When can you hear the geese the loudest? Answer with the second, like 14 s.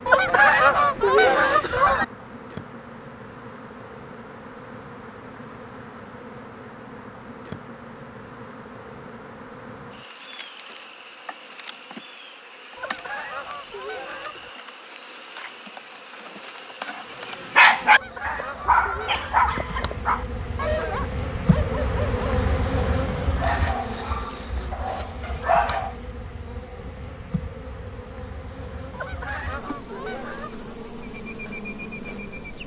1 s.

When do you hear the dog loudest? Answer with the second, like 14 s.
18 s.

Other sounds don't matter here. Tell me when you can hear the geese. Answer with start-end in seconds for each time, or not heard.
0.1-2.0, 12.8-14.6, 17.9-19.4, 28.9-30.7.